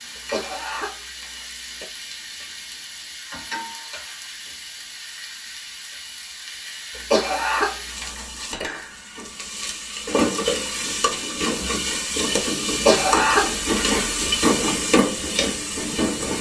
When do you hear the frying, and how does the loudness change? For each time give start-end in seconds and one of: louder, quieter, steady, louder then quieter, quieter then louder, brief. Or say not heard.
0.0-16.3 louder.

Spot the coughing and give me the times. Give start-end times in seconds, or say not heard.
0.1-1.9, 7.0-8.7, 12.8-13.9.